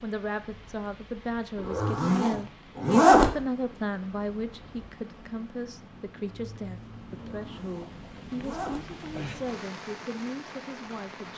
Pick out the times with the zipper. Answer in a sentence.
You can hear the zipper from 1.6 to 3.3 s and from 7.1 to 9.6 s.